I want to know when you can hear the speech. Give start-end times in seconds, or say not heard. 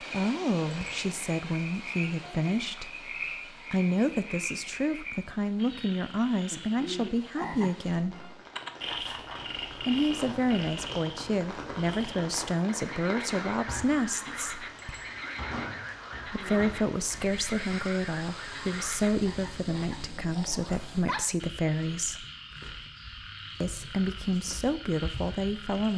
0.0-8.2, 9.8-14.7, 16.2-22.2, 23.6-25.9.